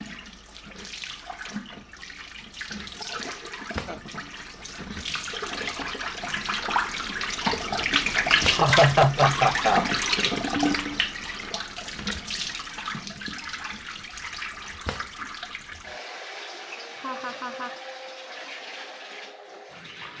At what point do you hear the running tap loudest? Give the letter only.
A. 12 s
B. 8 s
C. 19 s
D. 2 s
B.